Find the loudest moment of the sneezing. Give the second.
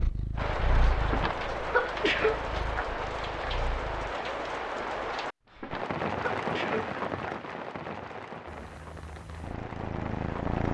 2 s.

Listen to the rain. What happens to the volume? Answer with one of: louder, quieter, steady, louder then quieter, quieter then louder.
quieter.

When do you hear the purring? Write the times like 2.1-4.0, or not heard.
0.0-5.2, 8.4-10.7.